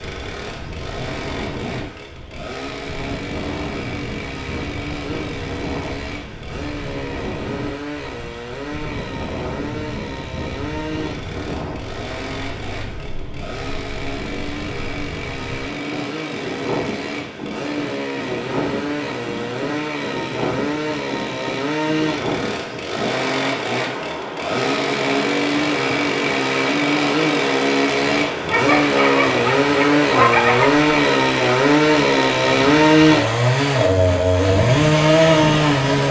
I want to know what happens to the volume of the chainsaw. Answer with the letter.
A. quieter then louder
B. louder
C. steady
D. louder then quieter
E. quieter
B.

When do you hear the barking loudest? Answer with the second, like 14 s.
30 s.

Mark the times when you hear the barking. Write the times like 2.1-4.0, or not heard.
28.3-30.8.